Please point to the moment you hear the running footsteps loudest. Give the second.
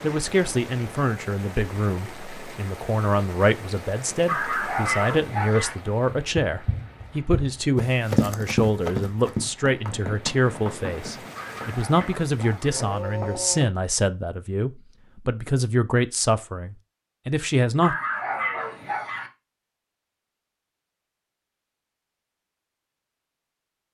8 s.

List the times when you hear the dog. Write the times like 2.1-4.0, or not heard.
4.2-5.8, 11.3-12.8, 17.8-19.3.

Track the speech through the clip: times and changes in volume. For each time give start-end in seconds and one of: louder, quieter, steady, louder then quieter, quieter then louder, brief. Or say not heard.
0.0-17.9 steady.